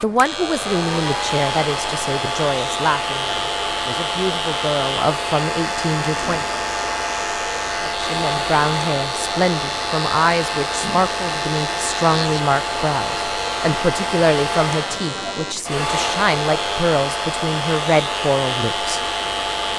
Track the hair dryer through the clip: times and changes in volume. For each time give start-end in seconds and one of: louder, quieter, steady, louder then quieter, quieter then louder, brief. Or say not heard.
0.0-19.7 steady.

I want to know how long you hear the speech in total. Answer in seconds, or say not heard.
18 s.